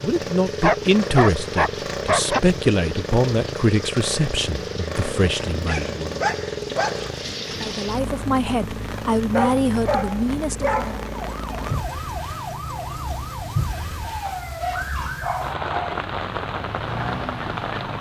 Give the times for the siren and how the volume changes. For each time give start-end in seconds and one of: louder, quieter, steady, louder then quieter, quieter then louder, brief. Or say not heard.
11.1-17.9 steady.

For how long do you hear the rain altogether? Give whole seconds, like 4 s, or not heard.
18 s.